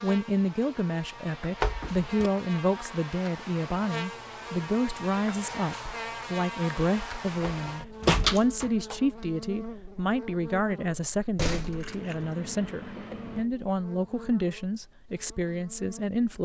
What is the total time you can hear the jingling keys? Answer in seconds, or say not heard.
2 s.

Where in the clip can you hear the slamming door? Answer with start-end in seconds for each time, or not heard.
1.6-2.3, 7.5-8.9, 11.2-11.9.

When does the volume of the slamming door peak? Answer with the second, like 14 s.
8 s.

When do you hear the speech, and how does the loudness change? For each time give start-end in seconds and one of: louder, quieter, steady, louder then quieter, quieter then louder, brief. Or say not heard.
0.0-16.4 steady.